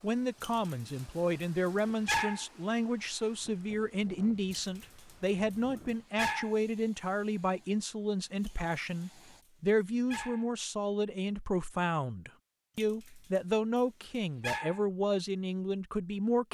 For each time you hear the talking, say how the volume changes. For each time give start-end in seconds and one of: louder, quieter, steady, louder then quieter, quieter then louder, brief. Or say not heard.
0.0-16.5 steady.